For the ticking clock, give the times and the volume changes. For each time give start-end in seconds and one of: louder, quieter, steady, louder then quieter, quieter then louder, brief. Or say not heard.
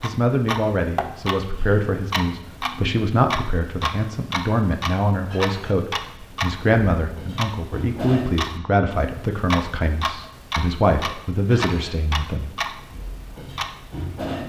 0.0-14.4 steady.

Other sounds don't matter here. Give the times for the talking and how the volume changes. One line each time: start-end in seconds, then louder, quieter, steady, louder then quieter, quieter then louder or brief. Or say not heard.
0.0-12.7 steady.